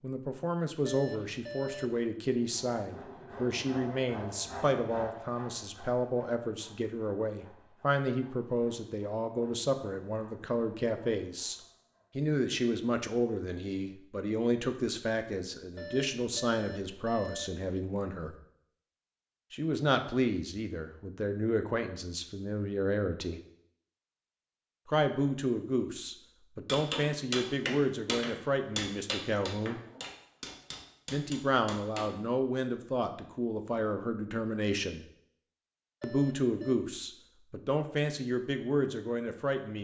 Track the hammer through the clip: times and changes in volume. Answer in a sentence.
You can hear the hammer from 26.6 to 32.1 s, getting quieter.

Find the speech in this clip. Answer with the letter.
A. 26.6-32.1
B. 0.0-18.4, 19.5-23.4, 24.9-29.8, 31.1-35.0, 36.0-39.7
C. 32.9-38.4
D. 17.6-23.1
B.